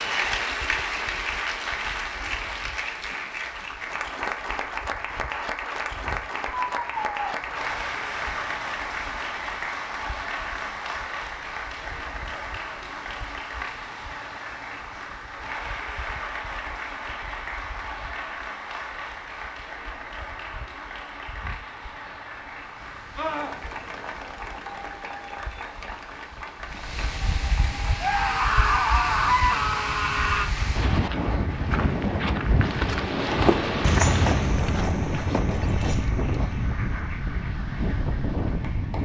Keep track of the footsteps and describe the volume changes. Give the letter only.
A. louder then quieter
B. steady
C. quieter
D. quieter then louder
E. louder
A.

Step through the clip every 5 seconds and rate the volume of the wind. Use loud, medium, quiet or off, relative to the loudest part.
quiet, quiet, quiet, quiet, quiet, medium, loud, loud.